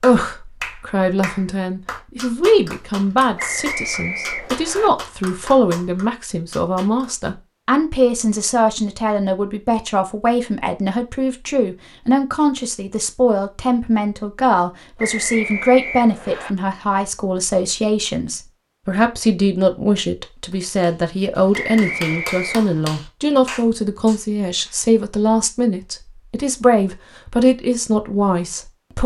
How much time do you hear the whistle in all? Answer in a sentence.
You can hear the whistle for 4 seconds altogether.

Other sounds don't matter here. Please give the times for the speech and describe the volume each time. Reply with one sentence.
You can hear the speech from 0.0 to 29.0 s, at a steady volume.